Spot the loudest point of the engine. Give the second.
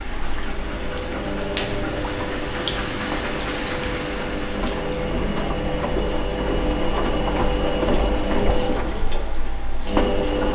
8 s.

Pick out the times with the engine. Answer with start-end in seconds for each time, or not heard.
0.0-10.5.